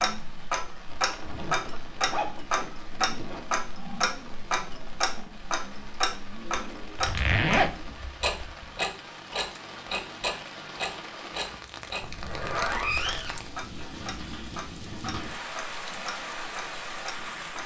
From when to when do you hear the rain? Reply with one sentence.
You can hear the rain from 0.0 to 17.6 s.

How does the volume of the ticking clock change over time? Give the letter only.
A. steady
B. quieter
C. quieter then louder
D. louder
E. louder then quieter
B.